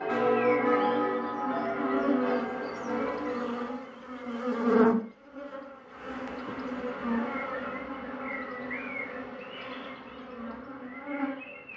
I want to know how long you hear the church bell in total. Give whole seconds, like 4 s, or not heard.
4 s.